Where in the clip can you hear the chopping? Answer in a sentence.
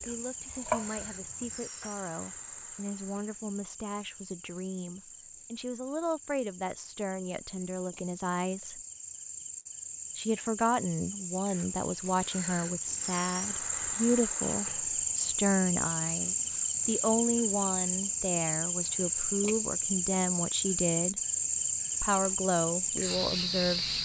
The chopping can be heard from 0.0 to 1.9 s.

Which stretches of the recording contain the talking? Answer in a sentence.
The talking can be heard from 0.1 to 8.8 s, from 10.2 to 21.2 s and from 22.0 to 23.9 s.